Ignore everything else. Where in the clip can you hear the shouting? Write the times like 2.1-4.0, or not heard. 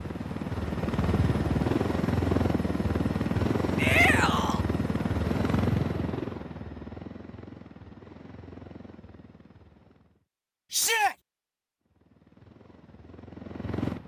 3.8-4.7, 10.7-11.2.